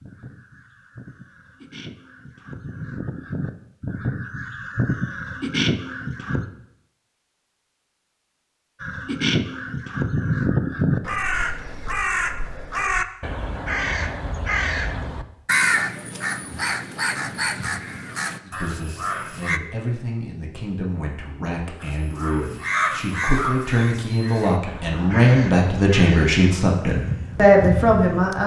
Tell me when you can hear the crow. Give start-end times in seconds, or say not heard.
0.0-6.5, 8.8-19.6, 21.8-28.4.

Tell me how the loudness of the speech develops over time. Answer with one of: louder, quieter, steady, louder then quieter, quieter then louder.
louder.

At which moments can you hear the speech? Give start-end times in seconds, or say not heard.
18.4-28.4.